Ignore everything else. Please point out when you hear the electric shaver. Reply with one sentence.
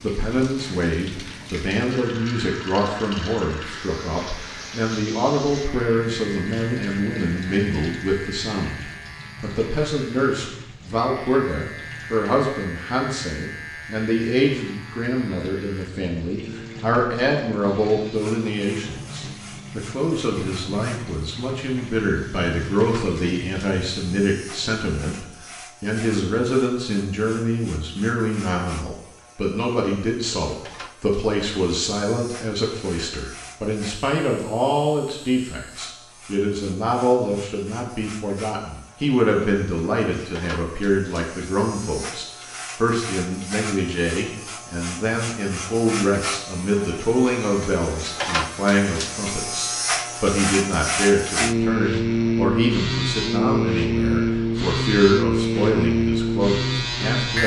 The electric shaver can be heard from 3.8 to 57.4 s.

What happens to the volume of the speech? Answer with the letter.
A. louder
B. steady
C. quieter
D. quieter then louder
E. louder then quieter
B.